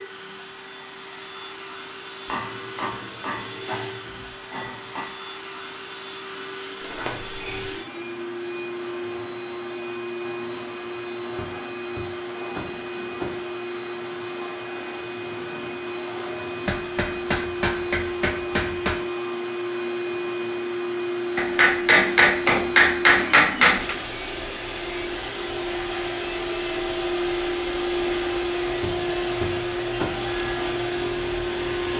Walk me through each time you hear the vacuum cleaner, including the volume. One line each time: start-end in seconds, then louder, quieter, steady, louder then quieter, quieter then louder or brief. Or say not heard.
0.0-31.9 louder.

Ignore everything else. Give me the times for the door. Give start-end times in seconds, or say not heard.
6.8-7.7, 11.3-13.3, 28.8-30.1.